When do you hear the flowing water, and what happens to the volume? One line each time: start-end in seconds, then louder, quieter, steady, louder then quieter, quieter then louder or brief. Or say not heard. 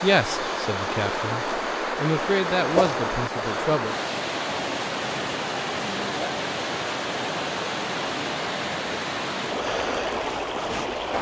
0.0-11.1 steady.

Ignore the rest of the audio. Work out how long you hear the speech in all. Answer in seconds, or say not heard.
4 s.